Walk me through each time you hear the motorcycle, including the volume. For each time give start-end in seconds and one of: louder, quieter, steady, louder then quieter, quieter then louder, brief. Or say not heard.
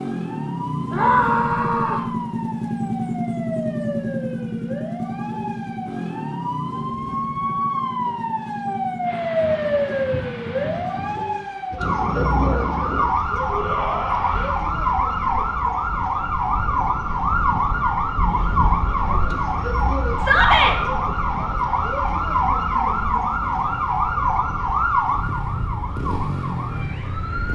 0.0-11.1 quieter
22.7-27.5 louder.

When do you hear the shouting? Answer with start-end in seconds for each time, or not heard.
0.9-2.1, 13.5-14.5, 20.1-20.8.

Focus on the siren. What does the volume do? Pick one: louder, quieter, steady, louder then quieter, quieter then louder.
louder.